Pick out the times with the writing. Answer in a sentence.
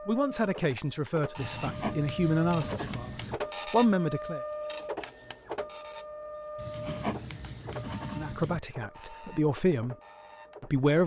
You can hear the writing from 1.4 to 3.4 s and from 6.5 to 8.6 s.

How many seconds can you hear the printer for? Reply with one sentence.
You can hear the printer for 11 seconds altogether.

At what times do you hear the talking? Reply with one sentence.
You can hear the talking from 0.1 to 4.4 s, from 8.1 to 9.9 s and from 10.6 to 11.0 s.